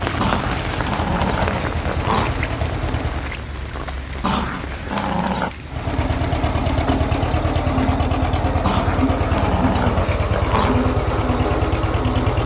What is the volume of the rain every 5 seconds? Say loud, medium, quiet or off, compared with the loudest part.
loud, medium, off.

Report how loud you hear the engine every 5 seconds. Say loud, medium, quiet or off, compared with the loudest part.
medium, loud, loud.